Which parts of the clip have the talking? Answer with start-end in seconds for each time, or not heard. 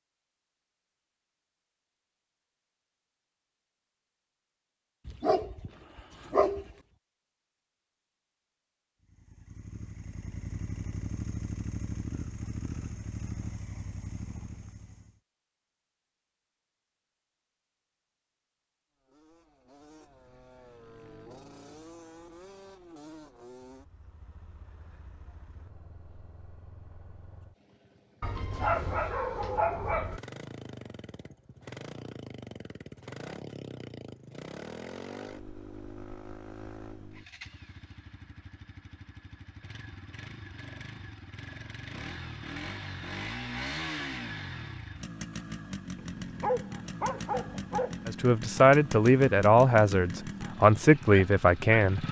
48.0-52.0.